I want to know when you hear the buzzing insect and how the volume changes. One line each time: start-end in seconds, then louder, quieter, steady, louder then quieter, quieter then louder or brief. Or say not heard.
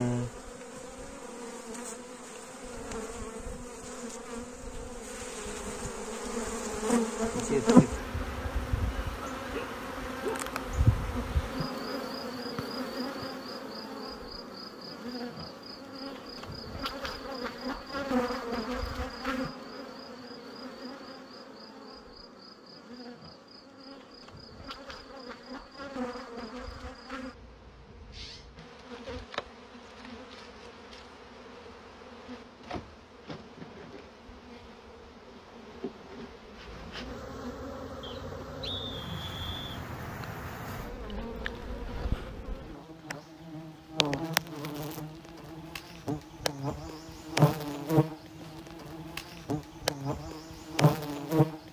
0.0-51.6 quieter then louder.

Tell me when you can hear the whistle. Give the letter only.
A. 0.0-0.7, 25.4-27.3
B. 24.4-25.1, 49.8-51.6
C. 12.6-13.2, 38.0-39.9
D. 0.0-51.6
C.